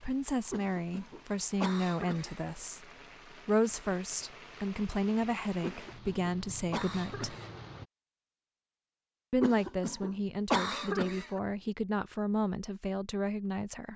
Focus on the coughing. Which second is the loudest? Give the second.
11 s.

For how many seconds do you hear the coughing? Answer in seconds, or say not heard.
6 s.